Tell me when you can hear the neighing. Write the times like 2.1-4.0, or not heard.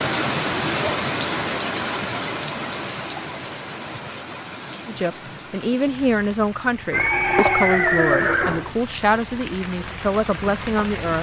6.9-8.7.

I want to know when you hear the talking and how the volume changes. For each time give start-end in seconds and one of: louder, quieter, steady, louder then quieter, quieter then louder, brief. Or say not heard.
4.8-11.1 steady.